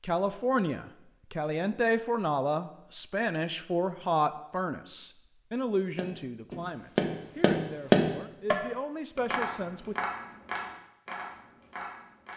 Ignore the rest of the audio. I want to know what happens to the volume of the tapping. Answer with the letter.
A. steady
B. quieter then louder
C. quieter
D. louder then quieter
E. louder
D.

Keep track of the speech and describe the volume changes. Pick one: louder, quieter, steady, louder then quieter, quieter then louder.
quieter.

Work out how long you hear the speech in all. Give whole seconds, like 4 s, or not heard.
10 s.